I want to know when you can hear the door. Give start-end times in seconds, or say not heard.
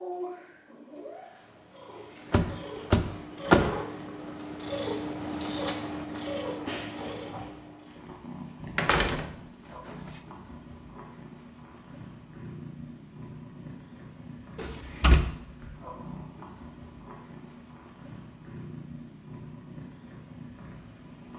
2.3-3.7, 8.8-9.3, 14.6-15.2.